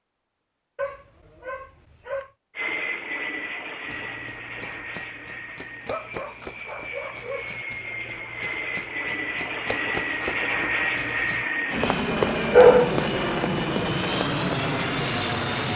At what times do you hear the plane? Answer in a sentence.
You can hear the plane from 2.5 to 15.7 s.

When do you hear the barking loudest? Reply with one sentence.
The volume of the barking peaks at 13 seconds.